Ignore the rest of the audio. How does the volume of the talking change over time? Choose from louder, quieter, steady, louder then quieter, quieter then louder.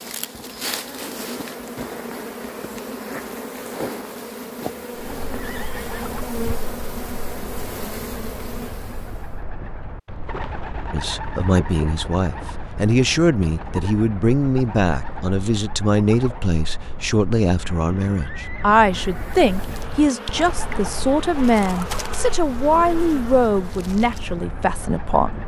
steady.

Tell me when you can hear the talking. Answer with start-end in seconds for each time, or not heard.
10.9-25.4.